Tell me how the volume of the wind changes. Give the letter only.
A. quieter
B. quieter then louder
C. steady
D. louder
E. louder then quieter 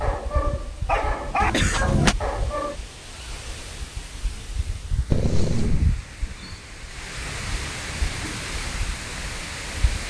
D.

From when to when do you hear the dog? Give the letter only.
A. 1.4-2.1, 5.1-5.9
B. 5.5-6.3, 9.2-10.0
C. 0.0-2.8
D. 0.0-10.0
C.